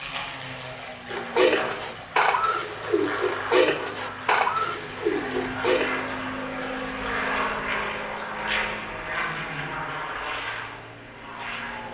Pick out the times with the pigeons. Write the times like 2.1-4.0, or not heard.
1.1-6.2.